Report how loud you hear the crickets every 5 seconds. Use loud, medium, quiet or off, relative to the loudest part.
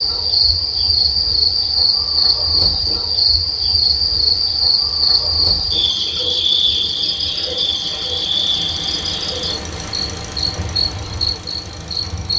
loud, loud, medium.